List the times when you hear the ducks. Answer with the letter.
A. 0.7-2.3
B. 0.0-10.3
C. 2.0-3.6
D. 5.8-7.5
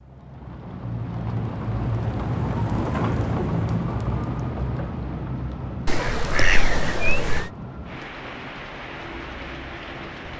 D.